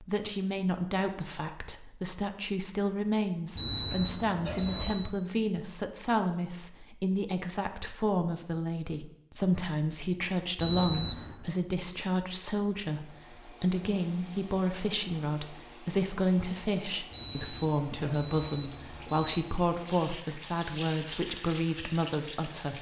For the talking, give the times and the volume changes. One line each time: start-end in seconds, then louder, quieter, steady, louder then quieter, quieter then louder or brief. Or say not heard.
0.0-22.7 steady.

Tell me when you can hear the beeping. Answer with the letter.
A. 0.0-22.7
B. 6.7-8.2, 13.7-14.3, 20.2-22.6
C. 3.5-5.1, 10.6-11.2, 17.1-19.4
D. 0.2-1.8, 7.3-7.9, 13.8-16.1
C.